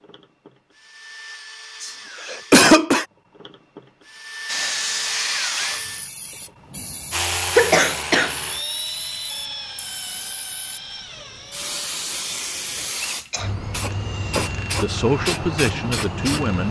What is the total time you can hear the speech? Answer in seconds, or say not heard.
2 s.